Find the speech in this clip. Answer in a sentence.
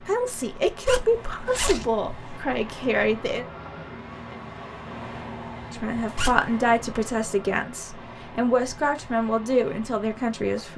The speech can be heard from 0.1 to 3.5 s and from 5.7 to 10.7 s.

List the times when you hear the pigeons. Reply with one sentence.
You can't hear the pigeons here.